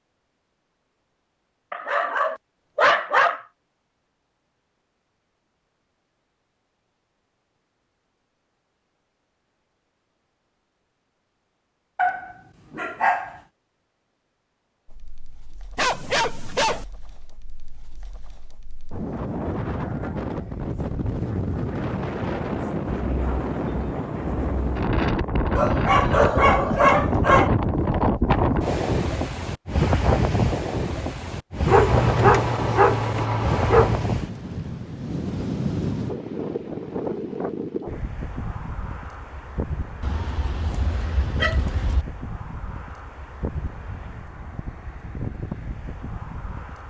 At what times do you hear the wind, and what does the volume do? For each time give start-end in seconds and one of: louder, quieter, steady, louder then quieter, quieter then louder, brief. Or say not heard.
14.8-46.8 louder then quieter.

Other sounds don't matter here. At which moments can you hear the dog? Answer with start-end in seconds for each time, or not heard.
1.7-3.5, 11.9-13.4, 15.8-16.9, 25.6-27.5, 31.6-34.0, 40.0-42.0.